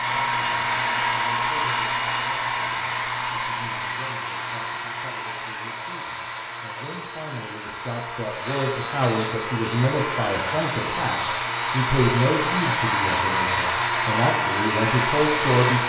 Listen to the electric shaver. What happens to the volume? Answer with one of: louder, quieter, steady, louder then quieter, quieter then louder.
louder.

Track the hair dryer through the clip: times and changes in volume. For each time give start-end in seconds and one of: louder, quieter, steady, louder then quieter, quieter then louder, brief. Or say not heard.
0.0-15.8 quieter then louder.